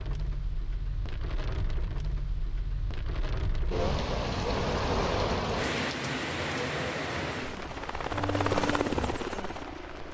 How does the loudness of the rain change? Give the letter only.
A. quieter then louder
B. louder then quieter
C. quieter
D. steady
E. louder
B.